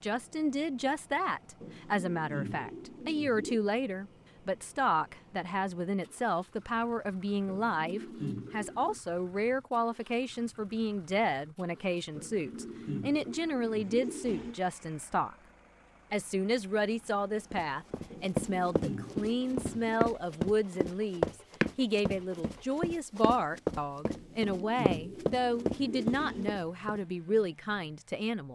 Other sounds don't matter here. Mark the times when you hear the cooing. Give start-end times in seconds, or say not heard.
1.6-3.6, 7.5-9.0, 12.2-14.6, 18.1-20.0, 24.1-26.6.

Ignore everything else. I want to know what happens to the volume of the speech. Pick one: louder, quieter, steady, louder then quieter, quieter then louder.
steady.